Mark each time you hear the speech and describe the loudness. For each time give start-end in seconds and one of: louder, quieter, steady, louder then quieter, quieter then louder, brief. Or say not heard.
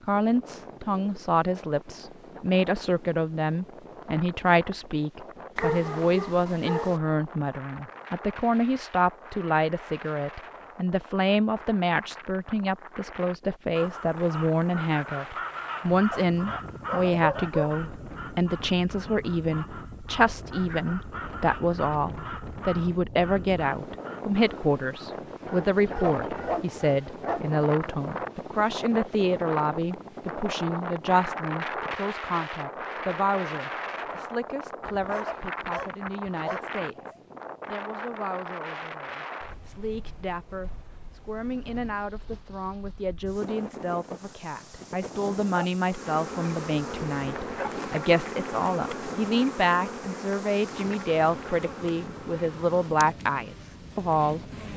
0.1-54.5 quieter then louder.